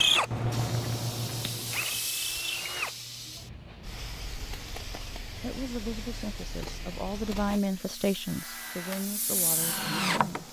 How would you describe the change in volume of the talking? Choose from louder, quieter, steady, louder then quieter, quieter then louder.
louder then quieter.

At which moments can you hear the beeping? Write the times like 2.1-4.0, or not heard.
not heard.